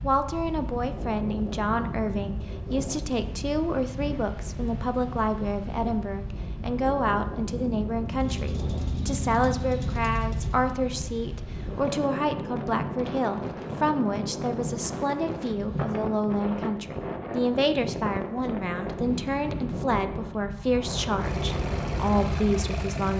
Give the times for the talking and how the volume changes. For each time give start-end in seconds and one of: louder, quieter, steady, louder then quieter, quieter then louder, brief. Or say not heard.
0.0-23.1 steady.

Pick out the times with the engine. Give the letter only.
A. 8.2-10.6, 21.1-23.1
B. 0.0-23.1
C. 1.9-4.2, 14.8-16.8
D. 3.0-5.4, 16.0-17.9
A.